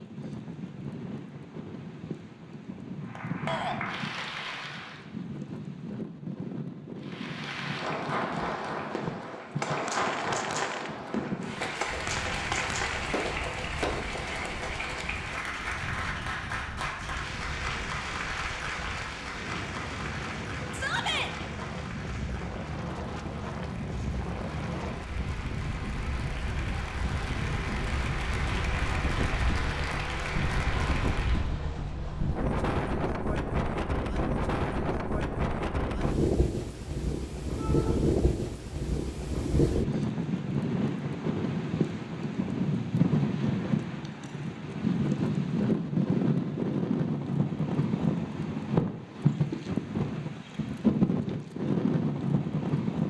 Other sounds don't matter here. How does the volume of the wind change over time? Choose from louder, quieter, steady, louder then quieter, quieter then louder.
louder.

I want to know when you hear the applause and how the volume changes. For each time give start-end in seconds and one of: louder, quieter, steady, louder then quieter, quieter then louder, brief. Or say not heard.
3.0-5.0 brief
7.0-31.6 quieter then louder.